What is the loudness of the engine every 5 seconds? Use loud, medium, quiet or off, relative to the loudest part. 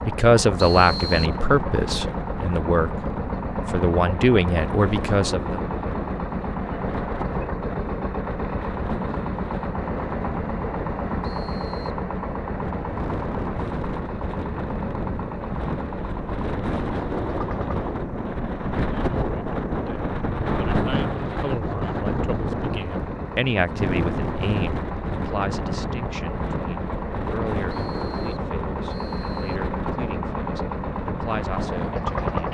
loud, loud, loud, medium, medium, loud, loud.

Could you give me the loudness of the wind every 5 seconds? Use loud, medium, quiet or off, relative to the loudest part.
medium, medium, medium, loud, loud, medium, medium.